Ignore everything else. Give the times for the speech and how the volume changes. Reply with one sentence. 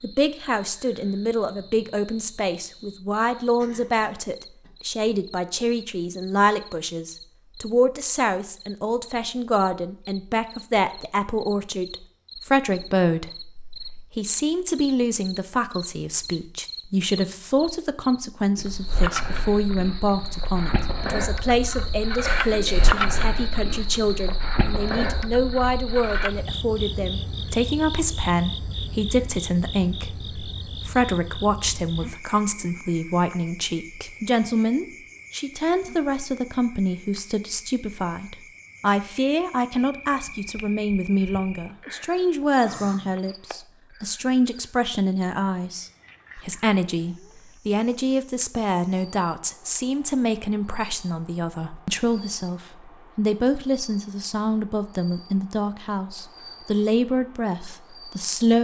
You can hear the speech from 0.0 to 58.5 s, at a steady volume.